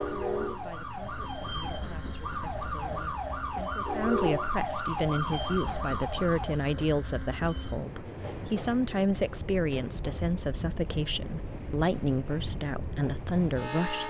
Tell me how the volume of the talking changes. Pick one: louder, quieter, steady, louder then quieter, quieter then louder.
louder.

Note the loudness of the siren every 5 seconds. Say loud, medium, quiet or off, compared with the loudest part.
loud, loud, off.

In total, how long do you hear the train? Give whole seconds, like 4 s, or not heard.
14 s.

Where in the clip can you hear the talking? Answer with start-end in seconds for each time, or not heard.
0.1-14.0.